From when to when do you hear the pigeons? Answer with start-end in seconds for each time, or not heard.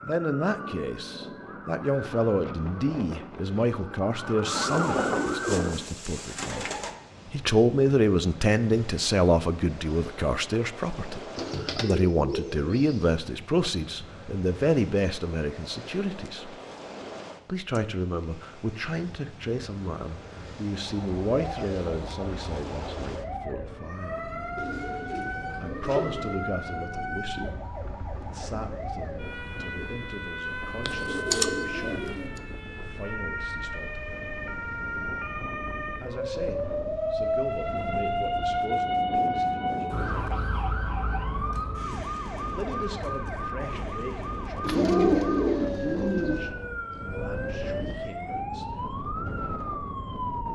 4.5-7.0, 11.3-13.1, 24.6-26.4, 30.9-32.4, 44.6-46.5.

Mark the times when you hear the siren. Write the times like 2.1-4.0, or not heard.
0.0-5.8, 20.8-50.5.